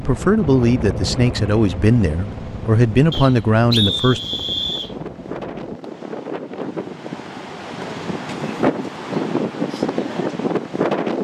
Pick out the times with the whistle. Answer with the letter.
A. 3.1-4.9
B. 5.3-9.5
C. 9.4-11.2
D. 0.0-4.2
A.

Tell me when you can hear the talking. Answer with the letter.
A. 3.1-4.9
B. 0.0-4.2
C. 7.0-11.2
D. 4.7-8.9
B.